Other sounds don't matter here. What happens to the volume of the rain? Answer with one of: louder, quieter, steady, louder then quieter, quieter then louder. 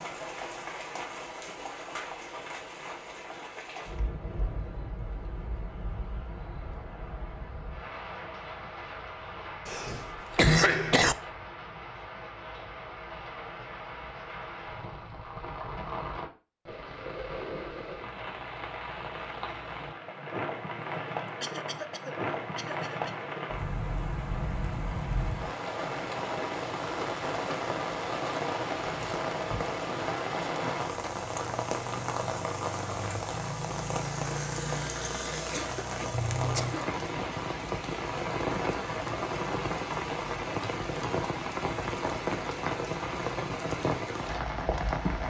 louder.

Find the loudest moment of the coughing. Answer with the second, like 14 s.
11 s.